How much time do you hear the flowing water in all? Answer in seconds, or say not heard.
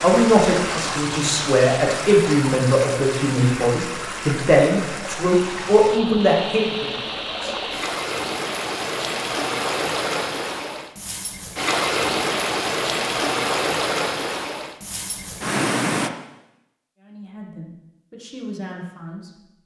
16 s.